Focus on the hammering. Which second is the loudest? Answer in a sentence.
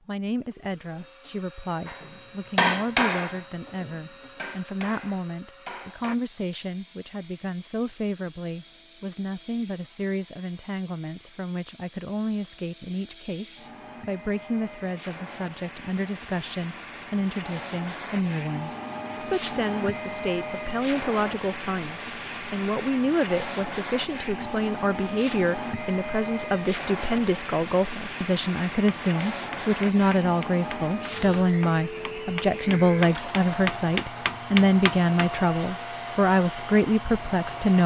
The volume of the hammering peaks at 3 seconds.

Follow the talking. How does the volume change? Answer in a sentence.
The volume of the talking goes up.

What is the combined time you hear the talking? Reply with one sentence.
The talking can be heard for 38 seconds in total.